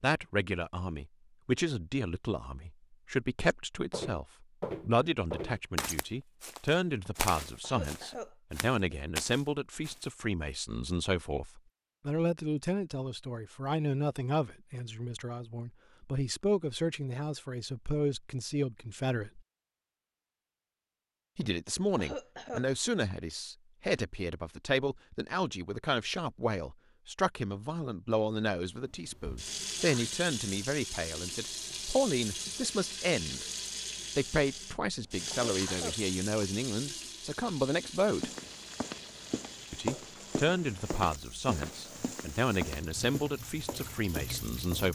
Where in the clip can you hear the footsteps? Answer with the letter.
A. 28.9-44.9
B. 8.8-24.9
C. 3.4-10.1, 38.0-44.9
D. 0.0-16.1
C.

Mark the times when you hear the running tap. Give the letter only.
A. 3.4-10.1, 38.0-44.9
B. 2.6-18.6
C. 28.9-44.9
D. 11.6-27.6
C.